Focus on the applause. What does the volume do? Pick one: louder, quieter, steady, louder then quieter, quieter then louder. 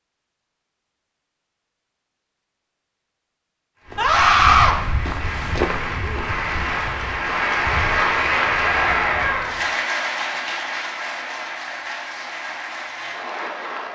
louder then quieter.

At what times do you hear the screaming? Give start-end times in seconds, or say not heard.
4.0-4.8, 8.6-9.6.